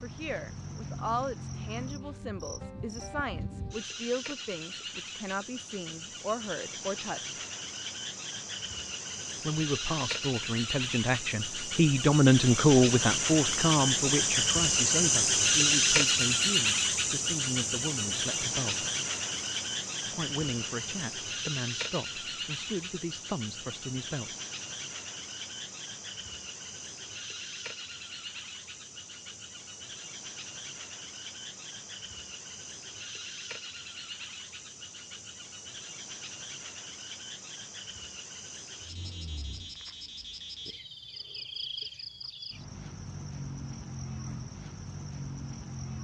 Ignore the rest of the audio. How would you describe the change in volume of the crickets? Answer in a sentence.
The volume of the crickets goes up, then down.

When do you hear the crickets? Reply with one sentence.
You can hear the crickets from 0.0 to 45.9 s.